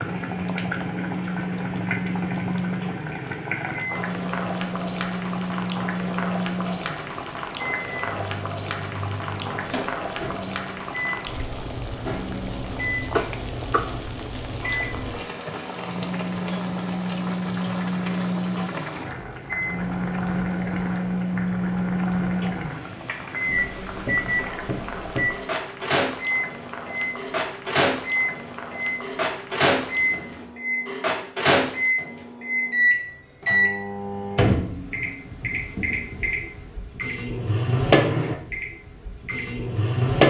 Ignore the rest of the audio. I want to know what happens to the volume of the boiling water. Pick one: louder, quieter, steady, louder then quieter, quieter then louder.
quieter.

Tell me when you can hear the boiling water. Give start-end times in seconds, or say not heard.
0.0-30.6.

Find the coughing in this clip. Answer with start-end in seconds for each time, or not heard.
13.2-13.9.